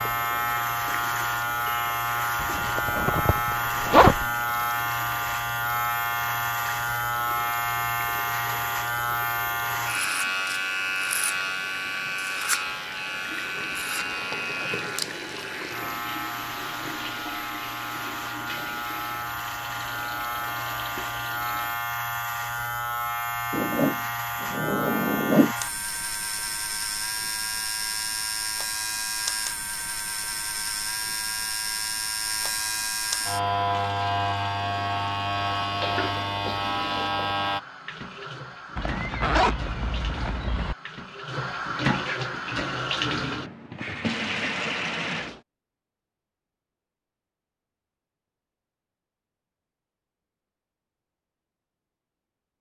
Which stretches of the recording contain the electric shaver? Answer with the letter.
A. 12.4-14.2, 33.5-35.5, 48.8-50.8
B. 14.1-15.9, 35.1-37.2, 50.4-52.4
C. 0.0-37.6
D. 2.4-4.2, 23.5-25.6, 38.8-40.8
C.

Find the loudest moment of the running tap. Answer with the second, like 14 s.
42 s.